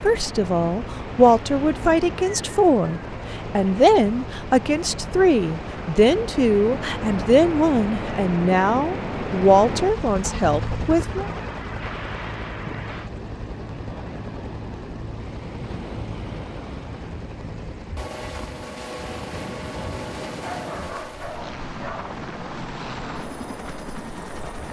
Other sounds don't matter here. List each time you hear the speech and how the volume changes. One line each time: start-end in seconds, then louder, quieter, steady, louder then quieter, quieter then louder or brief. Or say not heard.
0.0-11.2 steady.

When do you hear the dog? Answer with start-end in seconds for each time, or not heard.
20.4-22.1.